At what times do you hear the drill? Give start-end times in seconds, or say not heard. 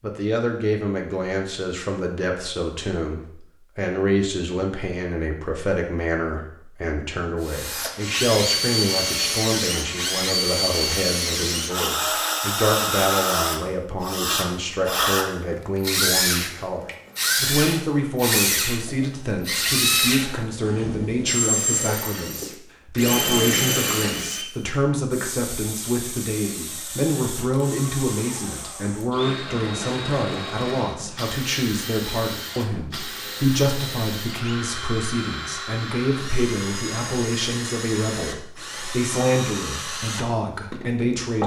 7.4-41.4.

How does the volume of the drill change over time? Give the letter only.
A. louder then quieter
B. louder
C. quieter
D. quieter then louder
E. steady
C.